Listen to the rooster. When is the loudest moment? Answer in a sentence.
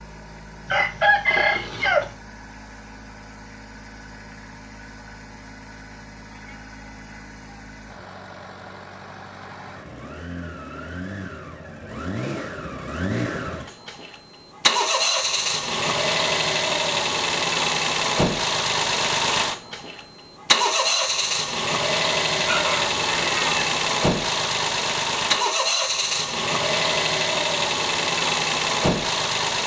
The volume of the rooster peaks at 1 second.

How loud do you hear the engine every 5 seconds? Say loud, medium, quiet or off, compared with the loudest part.
quiet, quiet, medium, loud, loud, loud.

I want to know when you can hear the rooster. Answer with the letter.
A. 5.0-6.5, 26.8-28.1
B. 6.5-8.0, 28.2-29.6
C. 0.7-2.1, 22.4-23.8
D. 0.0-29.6
C.